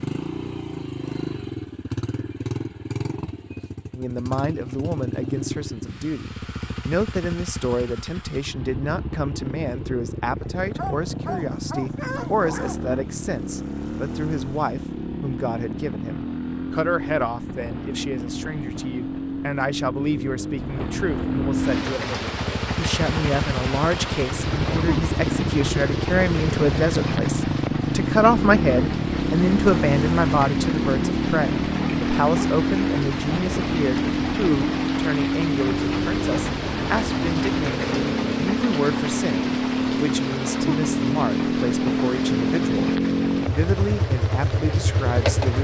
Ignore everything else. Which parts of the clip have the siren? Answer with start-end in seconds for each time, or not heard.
not heard.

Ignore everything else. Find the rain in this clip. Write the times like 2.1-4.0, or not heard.
21.5-45.6.